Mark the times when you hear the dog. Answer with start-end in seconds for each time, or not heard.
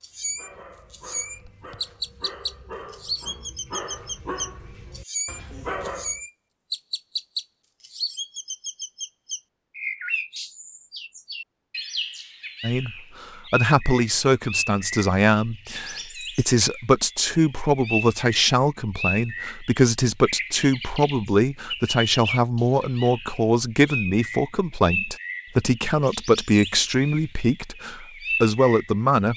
0.1-6.2.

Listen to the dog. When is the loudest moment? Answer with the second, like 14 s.
6 s.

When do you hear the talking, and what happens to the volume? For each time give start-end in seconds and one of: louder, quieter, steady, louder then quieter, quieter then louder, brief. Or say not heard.
12.6-29.3 steady.